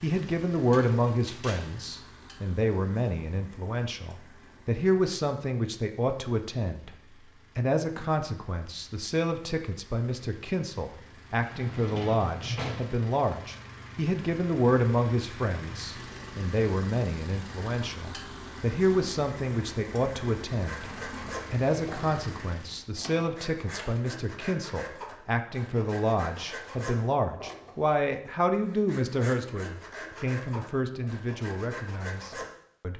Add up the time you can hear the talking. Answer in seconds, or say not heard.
32 s.